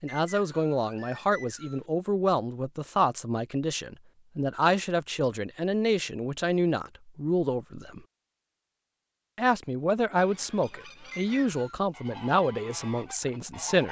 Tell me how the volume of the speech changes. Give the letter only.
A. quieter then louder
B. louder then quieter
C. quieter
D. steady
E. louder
D.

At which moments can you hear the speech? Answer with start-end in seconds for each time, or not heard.
0.0-8.0, 9.3-13.8.